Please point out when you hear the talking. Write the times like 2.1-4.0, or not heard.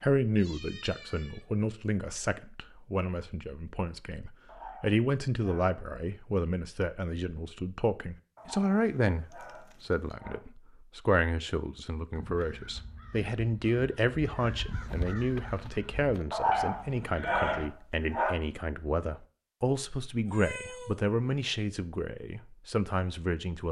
0.0-23.6.